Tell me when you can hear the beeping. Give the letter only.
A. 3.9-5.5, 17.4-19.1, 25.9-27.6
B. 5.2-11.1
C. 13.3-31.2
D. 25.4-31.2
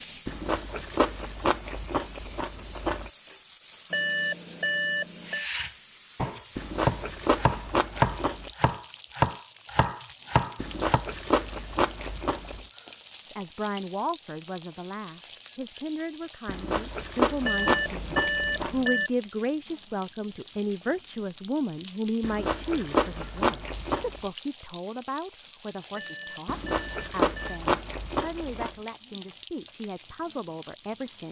A.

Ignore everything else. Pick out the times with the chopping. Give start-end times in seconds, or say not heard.
5.2-11.1.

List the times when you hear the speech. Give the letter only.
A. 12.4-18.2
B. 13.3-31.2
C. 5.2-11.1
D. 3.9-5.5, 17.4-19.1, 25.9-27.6
B.